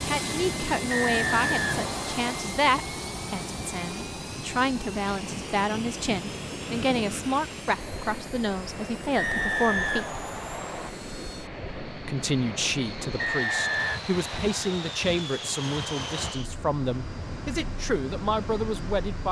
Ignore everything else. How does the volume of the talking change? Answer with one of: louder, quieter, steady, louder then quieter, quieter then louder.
steady.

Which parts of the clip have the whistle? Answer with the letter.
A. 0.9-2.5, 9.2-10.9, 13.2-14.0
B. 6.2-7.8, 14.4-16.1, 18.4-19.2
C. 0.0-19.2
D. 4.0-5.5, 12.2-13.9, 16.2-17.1
A.